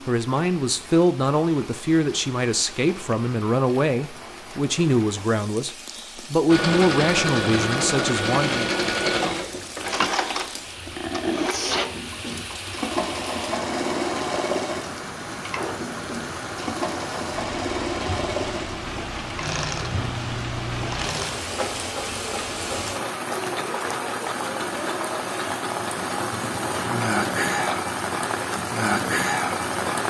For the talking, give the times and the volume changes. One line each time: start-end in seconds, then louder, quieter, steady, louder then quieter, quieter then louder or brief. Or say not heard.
0.1-8.7 steady.